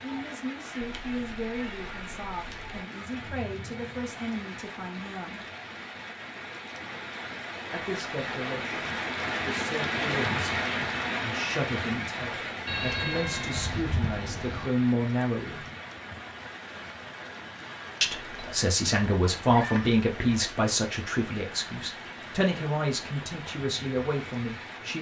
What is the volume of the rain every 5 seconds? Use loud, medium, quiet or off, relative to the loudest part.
medium, loud, loud, medium, medium.